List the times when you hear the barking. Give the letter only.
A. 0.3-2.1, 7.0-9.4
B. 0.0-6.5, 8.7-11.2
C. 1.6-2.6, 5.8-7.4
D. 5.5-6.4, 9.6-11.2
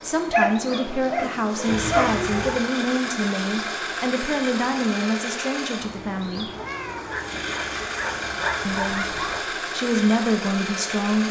A.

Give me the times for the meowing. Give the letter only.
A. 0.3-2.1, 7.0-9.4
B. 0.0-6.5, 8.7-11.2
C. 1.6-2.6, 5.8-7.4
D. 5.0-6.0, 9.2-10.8
C.